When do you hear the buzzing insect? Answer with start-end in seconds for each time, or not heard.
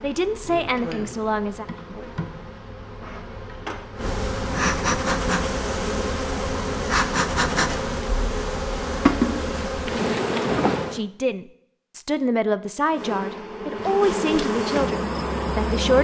0.0-11.0, 12.9-15.9.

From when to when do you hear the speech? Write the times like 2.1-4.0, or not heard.
0.0-1.6, 10.9-15.9.